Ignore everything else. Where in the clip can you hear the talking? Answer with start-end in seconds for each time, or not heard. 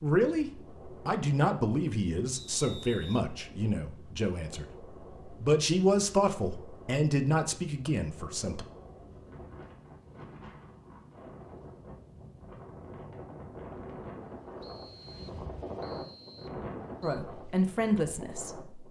0.0-8.7, 17.0-18.8.